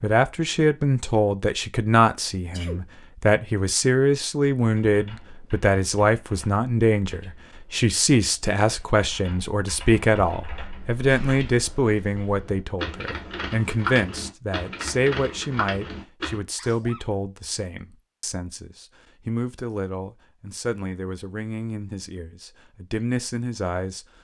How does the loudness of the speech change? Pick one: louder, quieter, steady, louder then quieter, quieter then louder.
quieter.